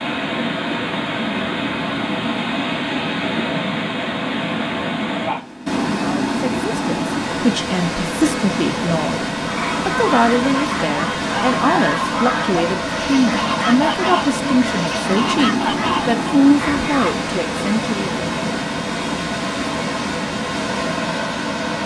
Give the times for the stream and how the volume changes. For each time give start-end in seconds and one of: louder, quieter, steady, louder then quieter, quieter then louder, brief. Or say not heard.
0.0-21.8 steady.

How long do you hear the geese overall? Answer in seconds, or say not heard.
8 s.